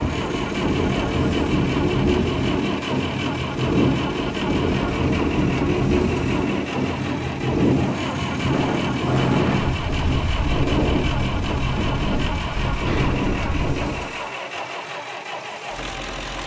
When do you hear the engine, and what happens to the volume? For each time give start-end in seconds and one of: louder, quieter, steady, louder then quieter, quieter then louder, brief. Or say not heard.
0.0-16.4 steady.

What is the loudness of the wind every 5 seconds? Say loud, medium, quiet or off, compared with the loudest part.
loud, loud, loud, off.